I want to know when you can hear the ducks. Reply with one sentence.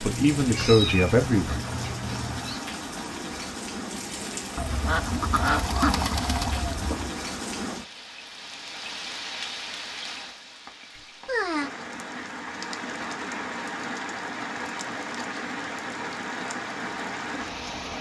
The ducks can be heard from 4.5 to 7.1 s.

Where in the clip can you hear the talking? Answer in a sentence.
You can hear the talking from 0.0 to 1.6 s.